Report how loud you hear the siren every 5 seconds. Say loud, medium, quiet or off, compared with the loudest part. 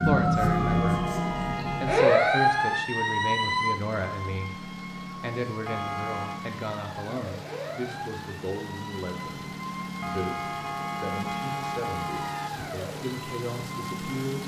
loud, quiet, quiet.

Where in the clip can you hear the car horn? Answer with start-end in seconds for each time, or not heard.
0.4-2.9, 5.7-6.5, 10.0-12.8.